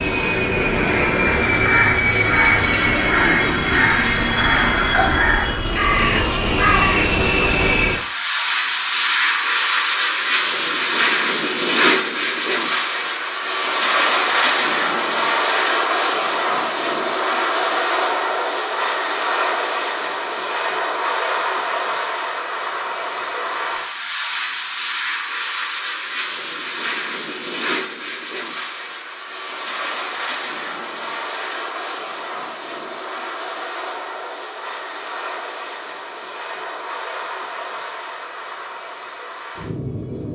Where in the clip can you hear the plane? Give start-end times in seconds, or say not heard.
0.0-40.3.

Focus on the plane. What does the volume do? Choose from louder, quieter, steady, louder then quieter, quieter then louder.
quieter.